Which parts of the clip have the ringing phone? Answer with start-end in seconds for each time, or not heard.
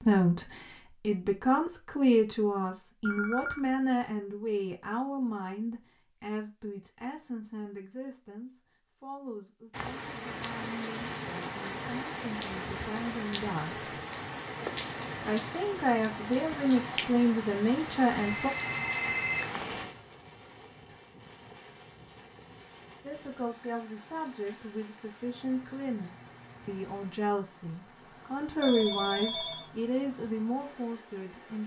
3.0-3.6, 18.2-19.6, 28.6-29.6.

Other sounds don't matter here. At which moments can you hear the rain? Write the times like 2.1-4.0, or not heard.
9.7-31.6.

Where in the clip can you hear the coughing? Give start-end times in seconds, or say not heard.
not heard.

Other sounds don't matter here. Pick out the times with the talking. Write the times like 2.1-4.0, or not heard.
0.0-13.8, 15.2-18.5, 23.0-31.6.